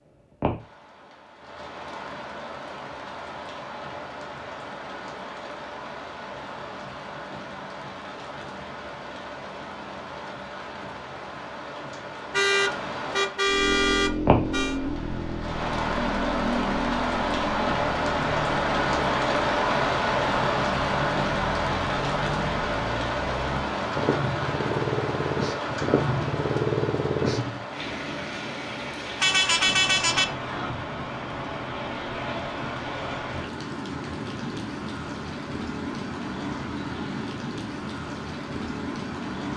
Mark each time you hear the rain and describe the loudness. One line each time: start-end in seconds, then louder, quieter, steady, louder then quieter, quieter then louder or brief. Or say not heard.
0.0-39.5 louder then quieter.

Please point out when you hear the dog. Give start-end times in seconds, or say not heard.
not heard.